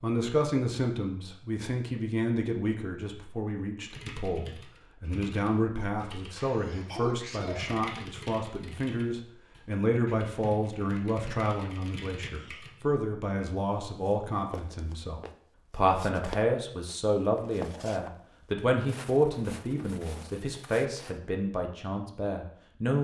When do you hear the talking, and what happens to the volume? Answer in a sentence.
You can hear the talking from 0.0 to 23.0 s, at a steady volume.